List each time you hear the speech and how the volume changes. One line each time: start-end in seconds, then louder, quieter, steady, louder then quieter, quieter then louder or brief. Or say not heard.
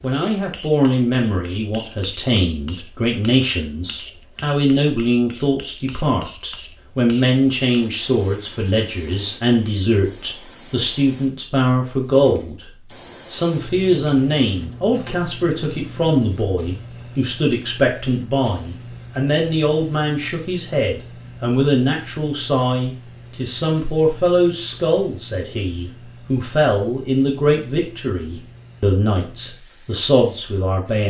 0.0-12.7 steady
13.3-31.0 steady.